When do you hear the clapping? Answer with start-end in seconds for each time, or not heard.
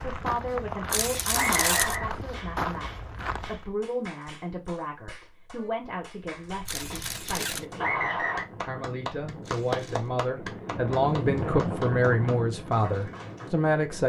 2.3-13.5.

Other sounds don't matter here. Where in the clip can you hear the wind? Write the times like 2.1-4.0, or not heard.
6.5-14.0.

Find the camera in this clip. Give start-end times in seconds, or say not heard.
0.9-2.0, 6.7-7.7, 9.4-10.1.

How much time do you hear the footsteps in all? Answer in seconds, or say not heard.
4 s.